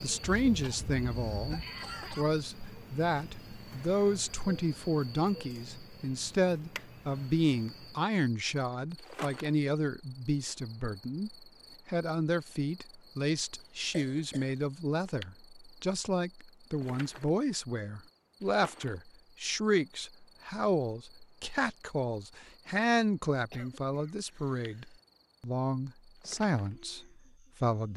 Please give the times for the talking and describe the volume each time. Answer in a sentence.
The talking can be heard from 0.0 to 27.9 s, at a steady volume.